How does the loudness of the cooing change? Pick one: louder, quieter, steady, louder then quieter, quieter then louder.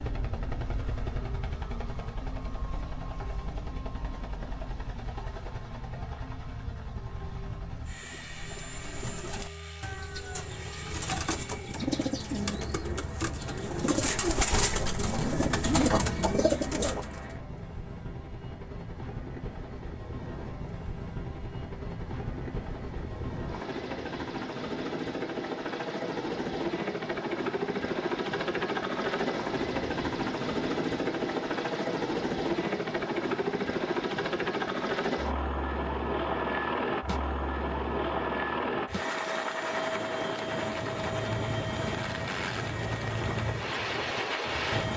louder.